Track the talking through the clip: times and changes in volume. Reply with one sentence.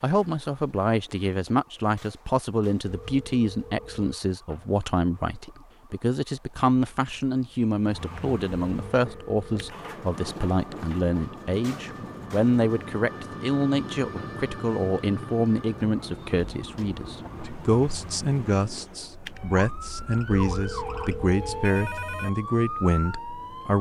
You can hear the talking from 0.0 to 23.7 s, at a steady volume.